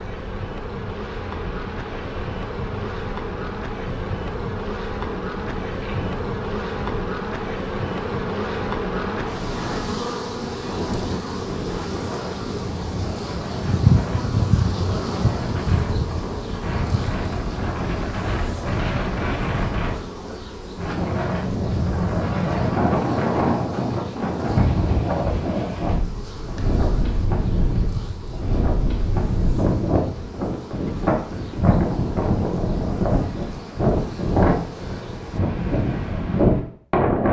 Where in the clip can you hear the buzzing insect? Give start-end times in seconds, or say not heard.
0.0-35.4.